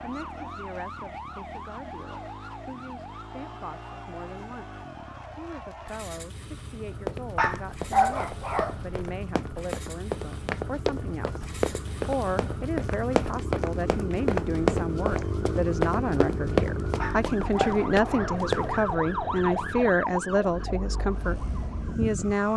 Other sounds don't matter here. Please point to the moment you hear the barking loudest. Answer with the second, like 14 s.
8 s.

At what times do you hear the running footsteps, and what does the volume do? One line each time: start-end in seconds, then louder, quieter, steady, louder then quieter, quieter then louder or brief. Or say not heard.
7.0-18.7 louder.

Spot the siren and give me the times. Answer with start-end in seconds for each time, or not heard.
0.0-22.5.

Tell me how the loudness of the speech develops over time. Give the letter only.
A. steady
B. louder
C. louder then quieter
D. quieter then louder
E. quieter
B.